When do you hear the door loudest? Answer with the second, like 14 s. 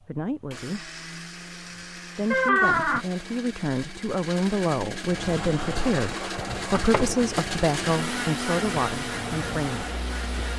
3 s.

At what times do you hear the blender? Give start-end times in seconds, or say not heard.
0.0-10.5.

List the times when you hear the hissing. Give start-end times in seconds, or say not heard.
5.0-10.5.